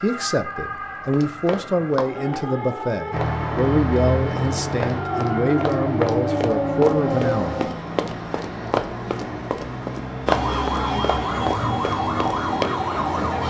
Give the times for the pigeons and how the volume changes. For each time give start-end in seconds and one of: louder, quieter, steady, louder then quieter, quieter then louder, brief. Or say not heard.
not heard.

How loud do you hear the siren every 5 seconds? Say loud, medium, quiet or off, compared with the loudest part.
medium, loud, loud.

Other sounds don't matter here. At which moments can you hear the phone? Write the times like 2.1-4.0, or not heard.
not heard.